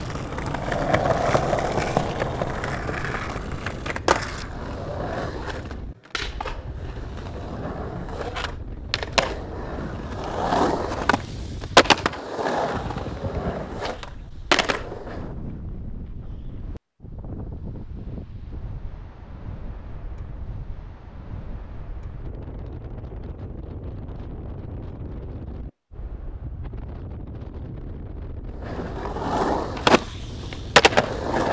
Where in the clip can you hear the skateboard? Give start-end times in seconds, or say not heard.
0.0-15.3, 28.6-31.4.